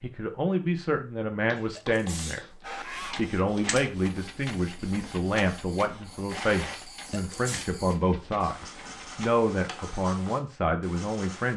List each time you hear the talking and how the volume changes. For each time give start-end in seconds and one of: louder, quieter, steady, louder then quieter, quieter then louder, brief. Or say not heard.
0.0-2.4 brief
3.1-11.5 steady.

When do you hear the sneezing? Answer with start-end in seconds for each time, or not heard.
1.7-3.2, 7.0-7.7.